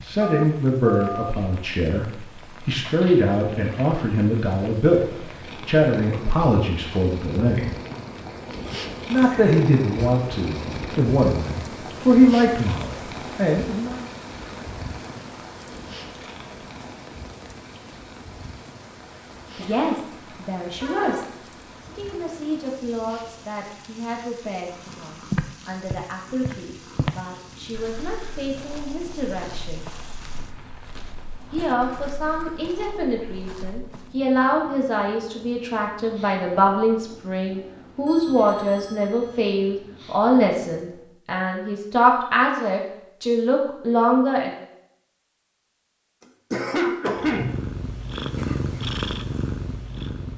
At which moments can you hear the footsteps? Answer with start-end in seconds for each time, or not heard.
25.3-34.1.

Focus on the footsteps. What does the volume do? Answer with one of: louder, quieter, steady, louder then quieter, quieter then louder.
quieter.